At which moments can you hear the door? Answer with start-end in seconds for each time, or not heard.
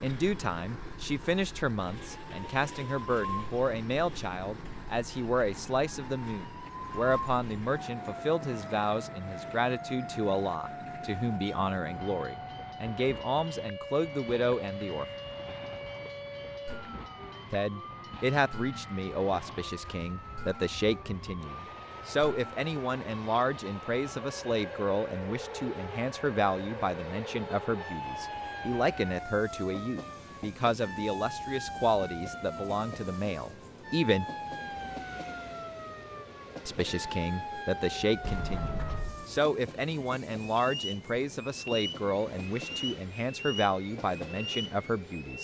38.2-39.2.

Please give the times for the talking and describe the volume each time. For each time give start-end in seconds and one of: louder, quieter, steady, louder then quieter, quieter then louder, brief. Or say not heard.
0.0-15.1 steady
17.5-34.2 steady
36.6-45.4 steady.